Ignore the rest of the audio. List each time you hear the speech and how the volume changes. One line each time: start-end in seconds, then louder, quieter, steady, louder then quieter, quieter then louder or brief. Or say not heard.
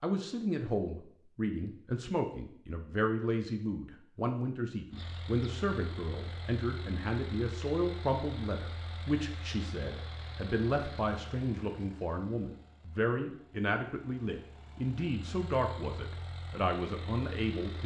0.0-17.8 steady.